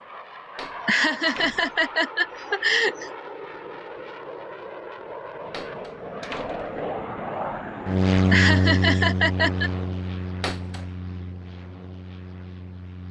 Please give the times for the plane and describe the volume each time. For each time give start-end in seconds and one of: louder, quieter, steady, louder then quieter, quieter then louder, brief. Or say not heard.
0.0-13.0 louder then quieter.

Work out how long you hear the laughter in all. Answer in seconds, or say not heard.
4 s.